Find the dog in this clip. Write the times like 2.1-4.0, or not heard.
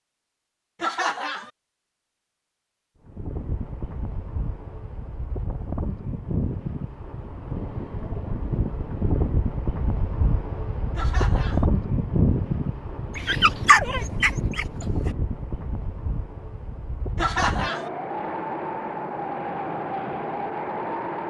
13.2-15.2.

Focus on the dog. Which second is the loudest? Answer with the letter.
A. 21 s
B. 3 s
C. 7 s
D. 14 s
D.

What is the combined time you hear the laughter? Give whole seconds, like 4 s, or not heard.
2 s.